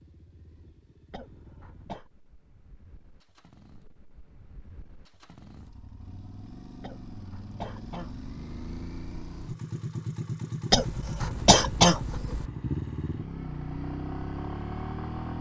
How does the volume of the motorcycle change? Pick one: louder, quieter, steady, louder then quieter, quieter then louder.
louder.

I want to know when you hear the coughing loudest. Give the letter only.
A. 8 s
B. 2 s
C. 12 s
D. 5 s
C.